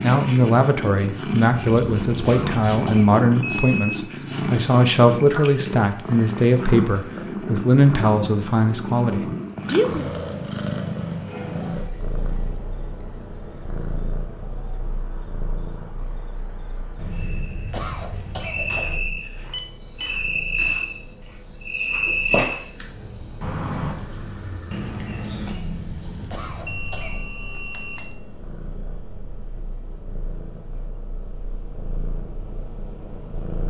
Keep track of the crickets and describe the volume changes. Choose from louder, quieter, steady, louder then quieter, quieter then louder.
louder then quieter.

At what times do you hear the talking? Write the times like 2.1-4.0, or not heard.
0.0-10.1.